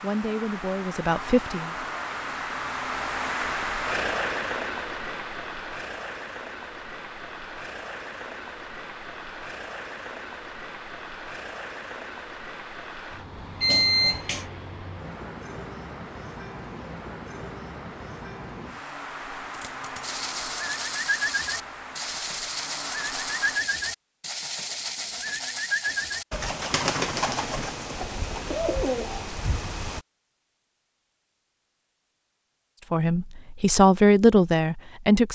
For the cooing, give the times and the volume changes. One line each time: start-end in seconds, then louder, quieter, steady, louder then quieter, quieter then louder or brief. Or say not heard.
20.0-30.1 steady.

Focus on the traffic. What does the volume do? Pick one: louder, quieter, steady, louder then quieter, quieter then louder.
quieter.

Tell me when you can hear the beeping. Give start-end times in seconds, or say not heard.
13.6-14.4.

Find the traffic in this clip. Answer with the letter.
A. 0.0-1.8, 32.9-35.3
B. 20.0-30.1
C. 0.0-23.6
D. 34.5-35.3
C.